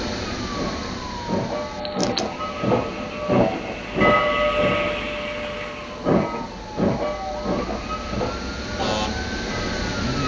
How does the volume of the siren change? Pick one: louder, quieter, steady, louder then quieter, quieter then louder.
quieter then louder.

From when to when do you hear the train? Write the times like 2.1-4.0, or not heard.
0.0-9.9.